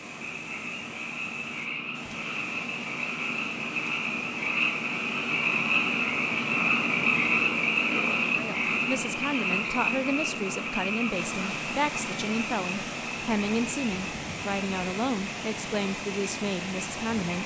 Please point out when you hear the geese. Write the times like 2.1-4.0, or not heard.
not heard.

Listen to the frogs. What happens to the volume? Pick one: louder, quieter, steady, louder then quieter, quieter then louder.
louder then quieter.